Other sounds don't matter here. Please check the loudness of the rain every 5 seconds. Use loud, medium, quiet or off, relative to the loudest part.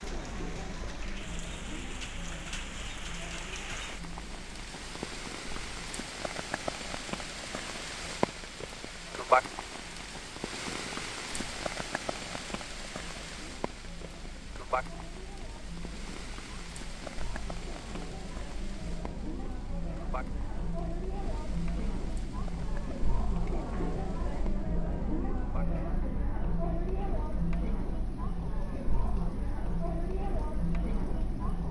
medium, loud, medium, quiet, quiet, quiet, quiet.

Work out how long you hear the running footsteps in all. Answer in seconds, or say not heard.
not heard.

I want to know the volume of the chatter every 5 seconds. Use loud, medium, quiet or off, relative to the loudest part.
medium, quiet, quiet, medium, loud, loud, loud.